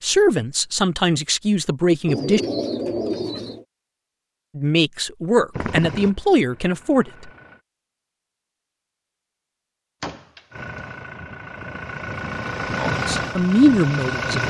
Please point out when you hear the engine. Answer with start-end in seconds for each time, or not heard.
5.5-7.7, 10.5-14.4.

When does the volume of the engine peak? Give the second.
13 s.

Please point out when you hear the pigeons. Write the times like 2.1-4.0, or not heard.
2.0-3.6.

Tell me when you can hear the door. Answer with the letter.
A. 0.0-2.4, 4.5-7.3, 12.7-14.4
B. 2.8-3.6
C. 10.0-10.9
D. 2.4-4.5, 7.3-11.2
C.